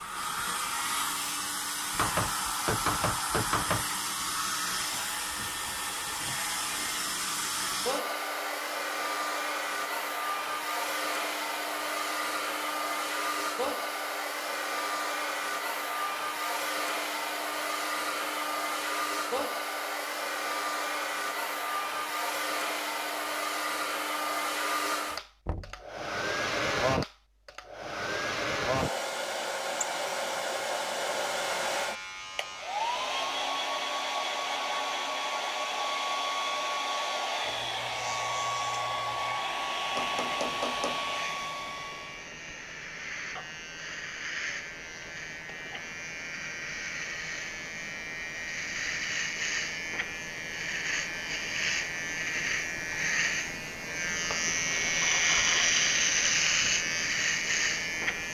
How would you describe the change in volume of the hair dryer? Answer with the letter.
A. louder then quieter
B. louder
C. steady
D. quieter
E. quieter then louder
C.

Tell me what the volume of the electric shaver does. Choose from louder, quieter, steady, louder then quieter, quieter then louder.
louder.